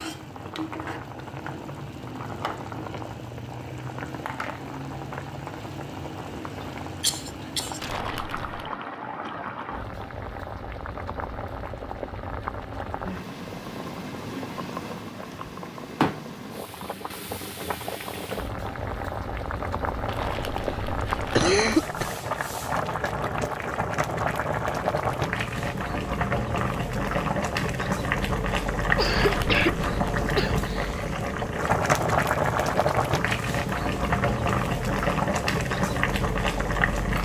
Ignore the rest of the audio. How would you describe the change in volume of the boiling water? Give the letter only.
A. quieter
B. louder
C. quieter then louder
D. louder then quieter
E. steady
B.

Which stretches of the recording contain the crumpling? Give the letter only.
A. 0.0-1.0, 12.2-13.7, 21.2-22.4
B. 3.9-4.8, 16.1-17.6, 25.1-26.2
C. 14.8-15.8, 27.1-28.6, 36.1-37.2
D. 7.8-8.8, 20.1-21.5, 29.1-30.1
D.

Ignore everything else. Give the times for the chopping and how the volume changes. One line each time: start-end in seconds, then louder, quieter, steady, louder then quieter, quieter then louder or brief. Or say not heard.
not heard.